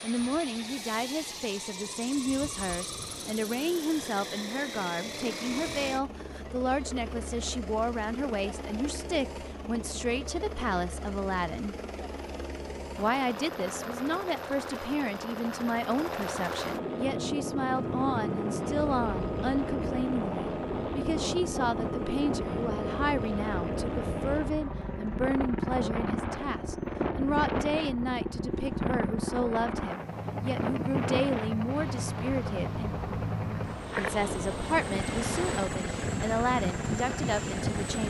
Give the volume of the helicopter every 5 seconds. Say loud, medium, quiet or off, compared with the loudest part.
medium, medium, medium, loud, loud, loud, loud, loud.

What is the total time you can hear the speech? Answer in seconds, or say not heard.
36 s.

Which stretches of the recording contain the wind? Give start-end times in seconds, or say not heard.
17.0-38.0.